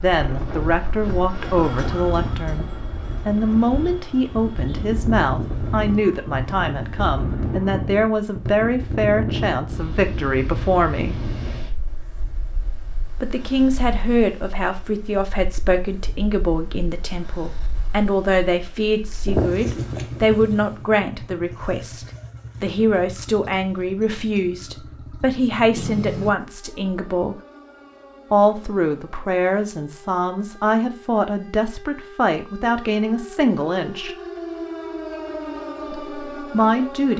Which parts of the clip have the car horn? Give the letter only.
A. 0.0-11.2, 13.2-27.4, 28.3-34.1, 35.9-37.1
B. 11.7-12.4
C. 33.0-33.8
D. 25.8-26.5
D.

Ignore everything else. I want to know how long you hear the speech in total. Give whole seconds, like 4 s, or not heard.
32 s.